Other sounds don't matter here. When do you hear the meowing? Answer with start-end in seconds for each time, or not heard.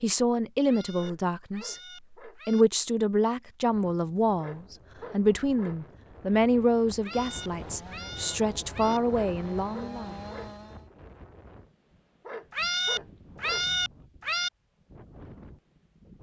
0.7-2.6, 7.0-9.0, 12.5-14.5.